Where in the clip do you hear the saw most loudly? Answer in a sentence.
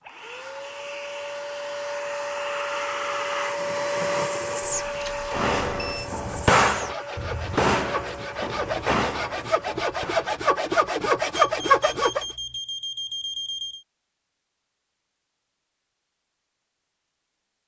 The volume of the saw peaks at 12 seconds.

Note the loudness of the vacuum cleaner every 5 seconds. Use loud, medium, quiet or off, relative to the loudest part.
loud, medium, off, off.